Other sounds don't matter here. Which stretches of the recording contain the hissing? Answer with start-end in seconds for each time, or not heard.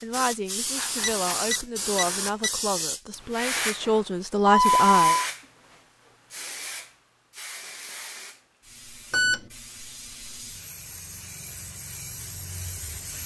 0.0-13.2.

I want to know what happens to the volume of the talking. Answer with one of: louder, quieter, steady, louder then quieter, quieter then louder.
louder.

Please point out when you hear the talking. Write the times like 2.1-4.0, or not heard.
0.0-5.2.